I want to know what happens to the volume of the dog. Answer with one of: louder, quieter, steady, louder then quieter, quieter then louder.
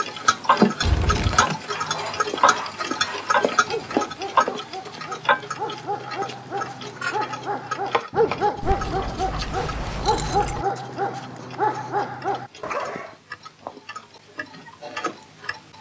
louder.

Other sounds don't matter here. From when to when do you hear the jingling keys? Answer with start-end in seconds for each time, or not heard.
0.8-1.4, 8.6-10.7.